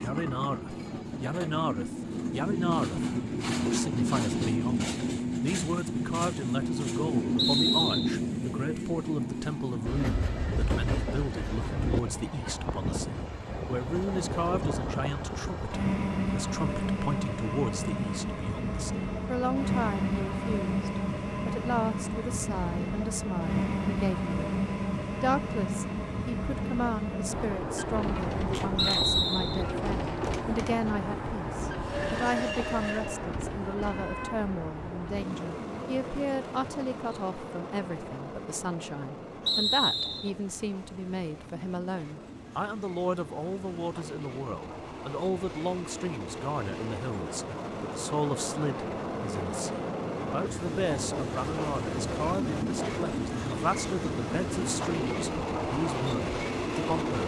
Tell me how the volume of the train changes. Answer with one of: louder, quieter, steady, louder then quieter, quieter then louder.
quieter then louder.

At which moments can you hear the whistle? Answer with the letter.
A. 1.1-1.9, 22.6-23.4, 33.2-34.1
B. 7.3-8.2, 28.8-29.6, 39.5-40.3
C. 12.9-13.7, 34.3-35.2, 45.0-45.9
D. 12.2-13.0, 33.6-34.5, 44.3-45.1
B.